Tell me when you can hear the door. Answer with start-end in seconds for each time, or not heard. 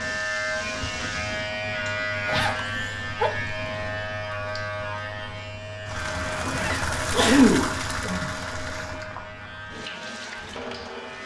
not heard.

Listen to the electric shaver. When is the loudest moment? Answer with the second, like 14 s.
2 s.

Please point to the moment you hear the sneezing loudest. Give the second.
7 s.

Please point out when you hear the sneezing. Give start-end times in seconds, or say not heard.
2.7-3.3, 7.0-8.3.